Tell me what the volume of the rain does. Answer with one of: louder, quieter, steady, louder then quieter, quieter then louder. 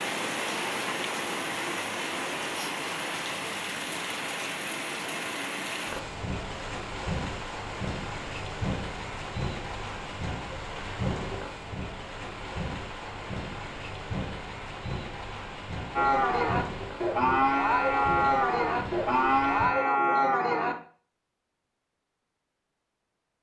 quieter.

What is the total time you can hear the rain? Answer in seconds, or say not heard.
20 s.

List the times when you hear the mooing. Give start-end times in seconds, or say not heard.
15.9-20.8.